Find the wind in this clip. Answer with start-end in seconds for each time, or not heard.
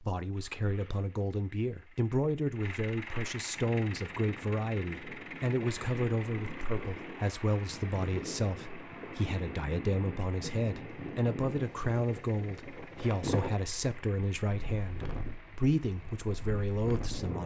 3.5-17.4.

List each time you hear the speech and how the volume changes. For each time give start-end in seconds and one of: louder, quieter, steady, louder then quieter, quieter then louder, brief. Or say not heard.
0.0-17.4 steady.